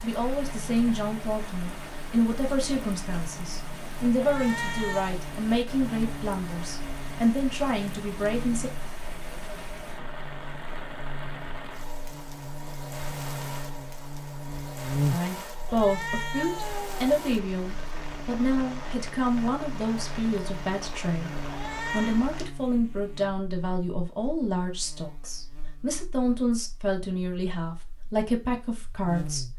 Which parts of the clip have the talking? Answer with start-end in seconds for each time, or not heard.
0.0-8.7, 15.1-29.4.